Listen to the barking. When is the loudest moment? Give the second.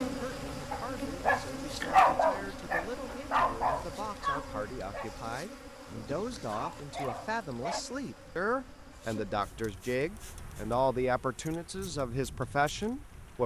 2 s.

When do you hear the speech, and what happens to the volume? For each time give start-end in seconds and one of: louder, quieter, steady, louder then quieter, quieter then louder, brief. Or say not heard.
0.0-13.4 louder.